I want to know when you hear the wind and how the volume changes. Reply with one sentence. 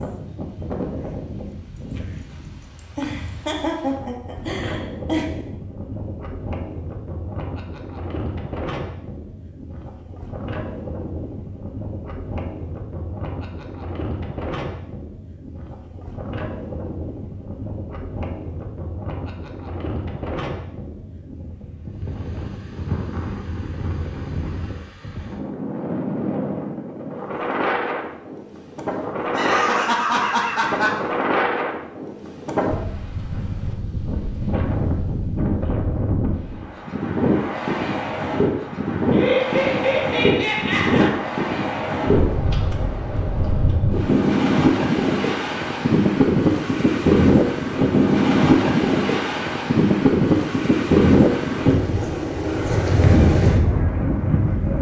The wind can be heard from 0.0 to 54.7 s, getting louder.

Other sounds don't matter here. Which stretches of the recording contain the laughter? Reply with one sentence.
The laughter can be heard from 3.0 to 5.2 s, from 29.3 to 31.0 s and from 39.1 to 41.1 s.